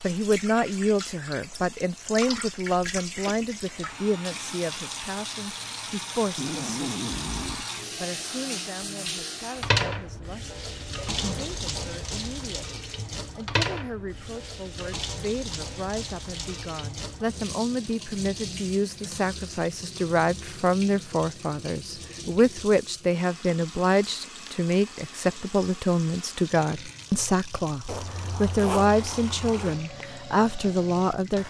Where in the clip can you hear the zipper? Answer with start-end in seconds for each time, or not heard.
6.3-7.7, 11.0-11.6, 27.9-29.8.